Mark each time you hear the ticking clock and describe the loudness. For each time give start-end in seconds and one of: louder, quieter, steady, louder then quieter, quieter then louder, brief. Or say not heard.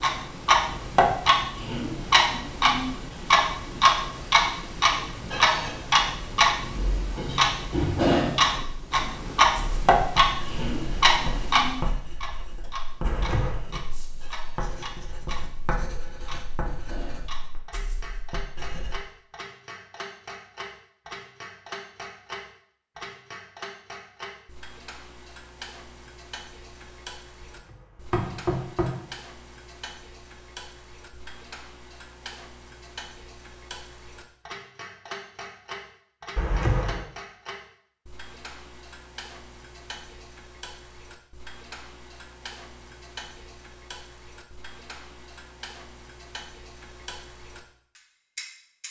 0.0-48.8 quieter.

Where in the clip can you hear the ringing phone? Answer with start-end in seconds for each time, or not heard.
not heard.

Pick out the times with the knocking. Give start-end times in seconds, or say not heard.
13.0-13.7, 27.4-29.1, 36.4-37.0.